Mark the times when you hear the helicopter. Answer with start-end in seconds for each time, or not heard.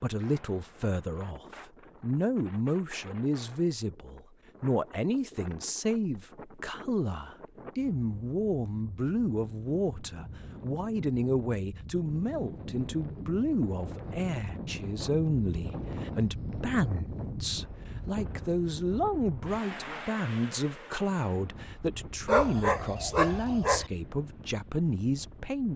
not heard.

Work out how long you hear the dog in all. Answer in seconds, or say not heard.
2 s.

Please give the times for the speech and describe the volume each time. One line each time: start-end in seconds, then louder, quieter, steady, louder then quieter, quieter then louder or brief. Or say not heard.
0.0-25.7 steady.